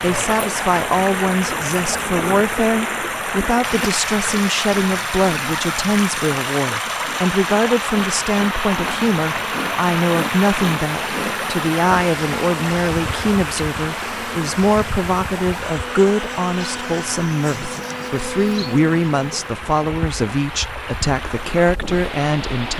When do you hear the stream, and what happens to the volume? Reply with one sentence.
The stream can be heard from 0.0 to 22.7 s, getting quieter.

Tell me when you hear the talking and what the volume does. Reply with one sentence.
The talking can be heard from 0.0 to 22.7 s, at a steady volume.